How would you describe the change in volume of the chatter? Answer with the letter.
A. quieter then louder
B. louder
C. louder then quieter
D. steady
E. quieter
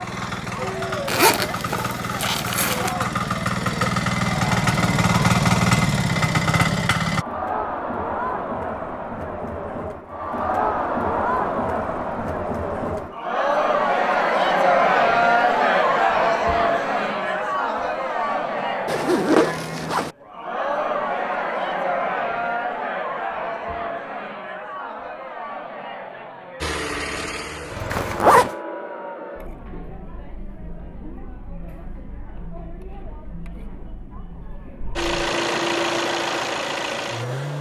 C.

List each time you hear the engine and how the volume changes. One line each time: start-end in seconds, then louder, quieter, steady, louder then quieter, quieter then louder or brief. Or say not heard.
0.0-7.2 louder
26.6-28.3 brief
35.0-37.5 brief.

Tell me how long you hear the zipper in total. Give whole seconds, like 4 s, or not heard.
4 s.